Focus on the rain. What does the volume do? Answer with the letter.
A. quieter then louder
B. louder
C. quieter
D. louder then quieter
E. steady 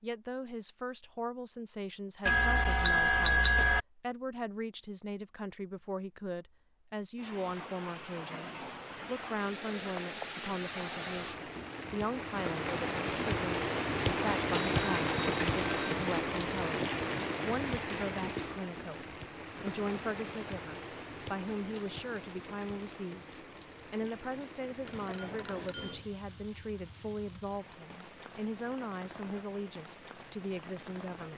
D.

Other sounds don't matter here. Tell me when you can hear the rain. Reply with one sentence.
You can hear the rain from 7.2 to 31.3 s.